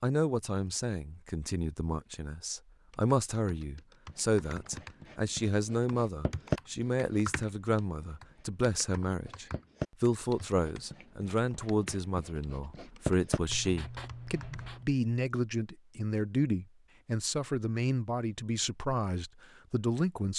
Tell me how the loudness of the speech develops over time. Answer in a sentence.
The loudness of the speech stays about the same.